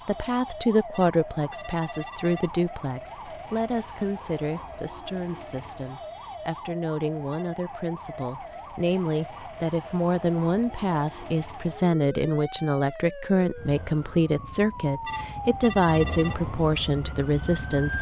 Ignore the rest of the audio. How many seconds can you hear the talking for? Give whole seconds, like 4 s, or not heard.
18 s.